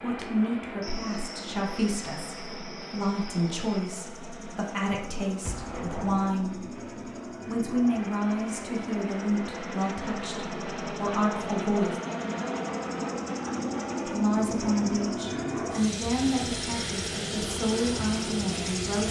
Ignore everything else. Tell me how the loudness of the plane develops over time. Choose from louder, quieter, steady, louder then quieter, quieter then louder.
louder.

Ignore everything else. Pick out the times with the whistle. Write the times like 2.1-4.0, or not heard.
not heard.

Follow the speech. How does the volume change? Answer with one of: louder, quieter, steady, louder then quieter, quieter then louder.
steady.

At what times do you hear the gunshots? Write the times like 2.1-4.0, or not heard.
4.8-6.3.